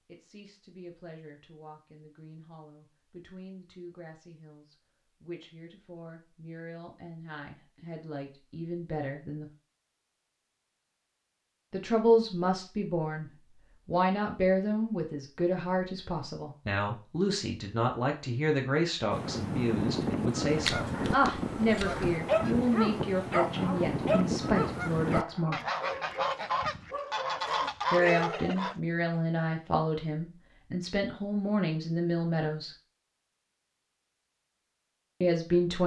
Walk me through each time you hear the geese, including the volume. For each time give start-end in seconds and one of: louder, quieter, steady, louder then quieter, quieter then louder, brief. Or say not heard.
19.1-28.8 steady.